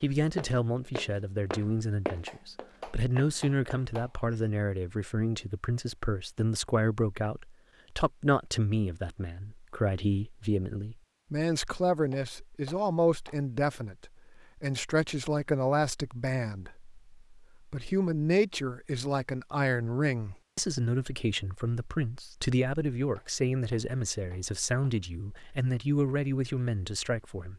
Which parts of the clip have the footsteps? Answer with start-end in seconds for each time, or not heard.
0.0-4.5.